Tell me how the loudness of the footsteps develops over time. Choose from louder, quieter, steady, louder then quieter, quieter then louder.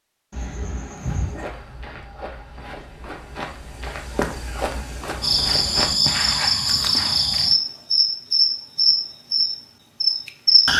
louder.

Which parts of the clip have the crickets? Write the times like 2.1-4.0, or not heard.
5.2-10.7.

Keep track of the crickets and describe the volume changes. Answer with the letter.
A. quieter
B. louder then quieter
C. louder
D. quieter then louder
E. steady
E.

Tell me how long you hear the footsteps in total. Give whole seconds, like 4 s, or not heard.
6 s.